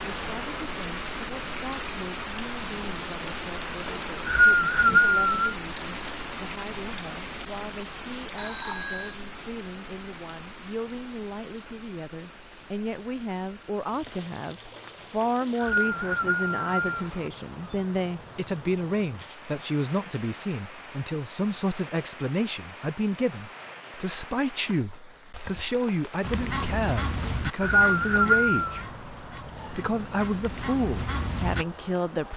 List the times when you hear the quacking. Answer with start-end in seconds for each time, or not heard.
26.2-31.6.